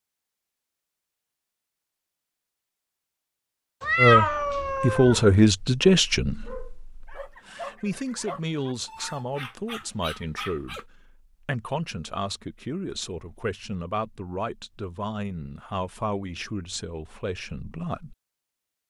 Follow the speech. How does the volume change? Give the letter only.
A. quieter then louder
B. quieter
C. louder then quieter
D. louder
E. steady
B.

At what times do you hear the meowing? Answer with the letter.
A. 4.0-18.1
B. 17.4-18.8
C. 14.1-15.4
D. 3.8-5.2
D.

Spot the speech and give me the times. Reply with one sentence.
You can hear the speech from 4.0 to 18.1 s.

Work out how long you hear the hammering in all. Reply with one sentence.
The hammering can't be heard in this clip.